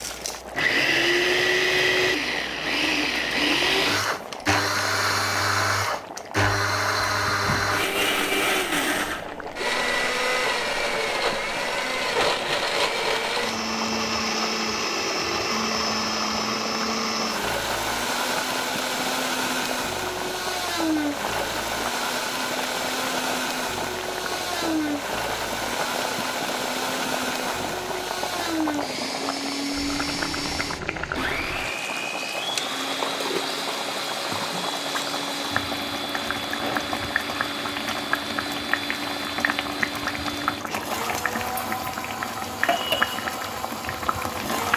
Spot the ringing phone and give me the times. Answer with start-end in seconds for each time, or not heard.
not heard.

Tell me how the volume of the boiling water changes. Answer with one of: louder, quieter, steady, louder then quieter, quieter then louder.
louder.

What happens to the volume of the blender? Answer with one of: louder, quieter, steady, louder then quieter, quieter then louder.
quieter.